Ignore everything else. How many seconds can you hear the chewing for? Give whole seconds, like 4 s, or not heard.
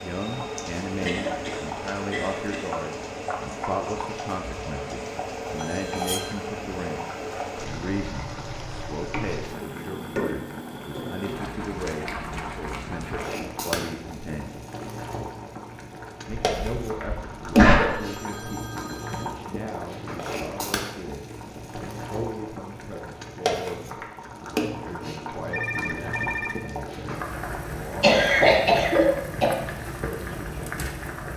not heard.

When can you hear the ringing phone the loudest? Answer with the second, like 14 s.
26 s.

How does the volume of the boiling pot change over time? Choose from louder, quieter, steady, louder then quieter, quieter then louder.
steady.